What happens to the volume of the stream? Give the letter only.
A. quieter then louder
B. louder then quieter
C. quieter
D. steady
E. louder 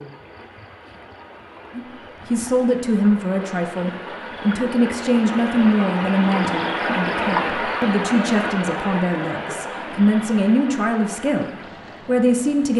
B.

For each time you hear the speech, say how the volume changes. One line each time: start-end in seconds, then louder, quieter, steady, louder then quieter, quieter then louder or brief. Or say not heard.
1.8-12.7 steady.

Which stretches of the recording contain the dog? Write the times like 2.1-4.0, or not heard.
not heard.